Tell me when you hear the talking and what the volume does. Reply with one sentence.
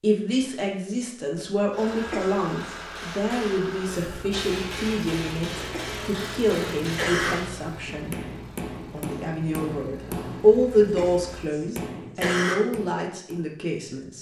The talking can be heard from 0.0 to 8.2 s, at a steady volume; and from 8.8 to 14.1 s, getting louder then quieter.